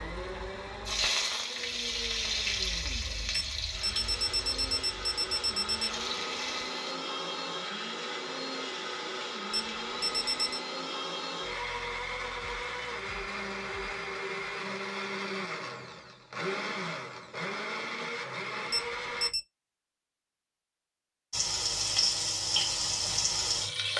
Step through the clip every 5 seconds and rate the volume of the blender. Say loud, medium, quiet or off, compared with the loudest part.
medium, loud, loud, loud, off.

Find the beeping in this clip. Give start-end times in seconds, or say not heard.
3.5-5.9, 9.5-10.6, 18.7-19.4.